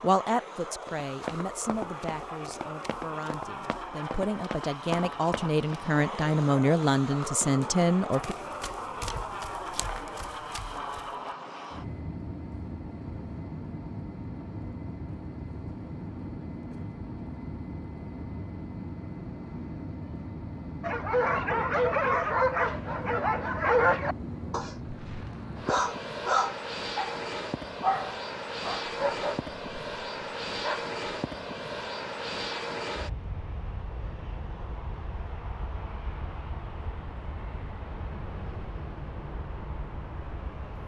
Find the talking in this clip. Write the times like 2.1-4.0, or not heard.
0.0-8.3.